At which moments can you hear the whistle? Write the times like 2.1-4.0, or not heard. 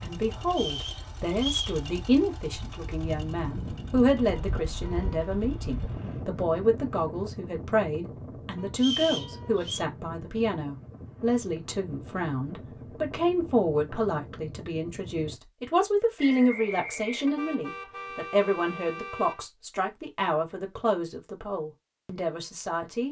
0.5-1.8, 8.8-9.8, 16.1-17.4.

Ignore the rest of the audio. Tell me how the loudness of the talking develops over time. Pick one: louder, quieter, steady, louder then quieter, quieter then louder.
steady.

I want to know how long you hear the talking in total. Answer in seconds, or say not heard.
23 s.